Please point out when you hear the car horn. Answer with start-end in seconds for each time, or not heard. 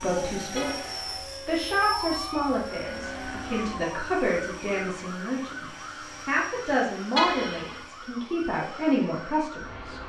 0.6-1.0, 7.2-7.8.